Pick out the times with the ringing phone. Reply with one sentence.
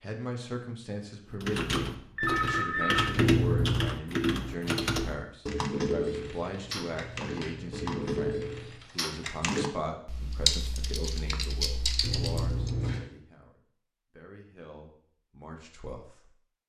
The ringing phone can be heard from 2.1 to 3.1 s.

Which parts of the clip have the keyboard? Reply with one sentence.
The keyboard can be heard from 1.3 to 12.8 s.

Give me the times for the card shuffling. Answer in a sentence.
The card shuffling can be heard from 3.1 to 4.0 s, from 6.3 to 8.8 s and from 12.0 to 13.1 s.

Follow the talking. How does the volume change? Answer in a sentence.
The volume of the talking goes down.